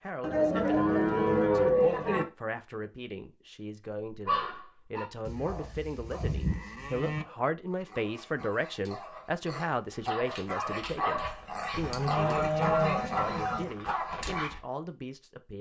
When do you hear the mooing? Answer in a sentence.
The mooing can be heard from 0.2 to 2.2 s, from 5.2 to 7.2 s and from 11.7 to 13.7 s.